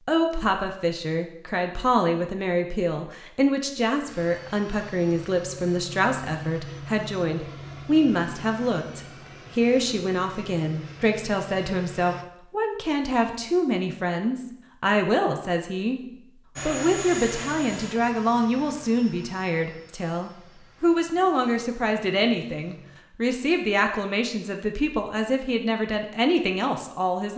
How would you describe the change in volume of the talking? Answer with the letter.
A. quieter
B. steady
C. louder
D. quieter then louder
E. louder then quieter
B.